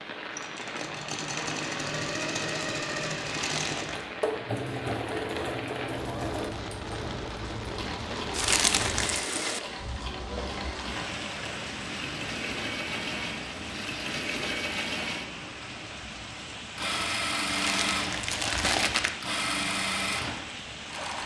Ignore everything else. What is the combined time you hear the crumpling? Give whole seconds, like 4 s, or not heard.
3 s.